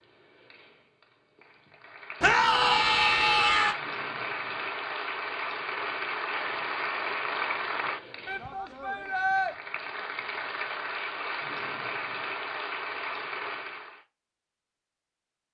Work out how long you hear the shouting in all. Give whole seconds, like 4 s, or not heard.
3 s.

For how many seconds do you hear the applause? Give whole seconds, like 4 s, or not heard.
14 s.